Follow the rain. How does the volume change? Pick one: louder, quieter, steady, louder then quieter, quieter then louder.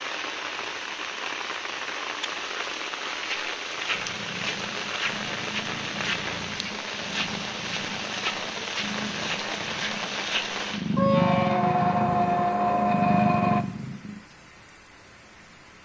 quieter.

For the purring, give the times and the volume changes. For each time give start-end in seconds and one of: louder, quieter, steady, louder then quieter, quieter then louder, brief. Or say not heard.
3.7-14.2 louder.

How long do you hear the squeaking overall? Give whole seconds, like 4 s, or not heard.
3 s.